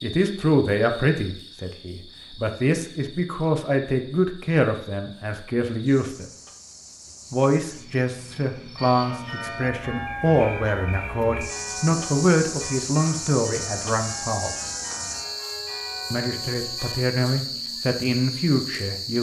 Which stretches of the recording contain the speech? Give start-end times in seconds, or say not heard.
0.0-6.2, 7.3-14.5, 16.1-19.1.